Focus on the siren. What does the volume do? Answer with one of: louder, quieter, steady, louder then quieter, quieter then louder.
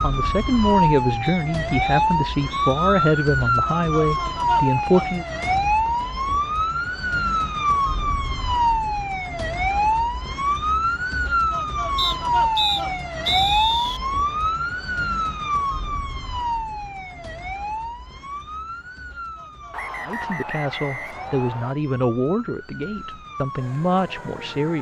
quieter.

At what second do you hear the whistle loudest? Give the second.
13 s.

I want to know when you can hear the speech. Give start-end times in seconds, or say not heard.
0.0-5.2, 20.0-24.7.